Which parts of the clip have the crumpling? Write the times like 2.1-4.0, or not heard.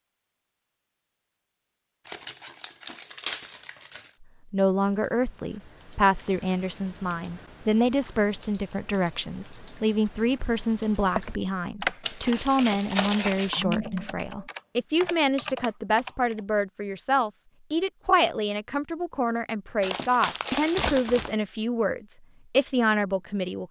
2.0-4.1, 12.0-13.6, 19.8-21.4.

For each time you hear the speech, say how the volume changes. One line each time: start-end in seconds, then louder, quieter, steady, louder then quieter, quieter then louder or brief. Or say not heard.
4.5-23.6 steady.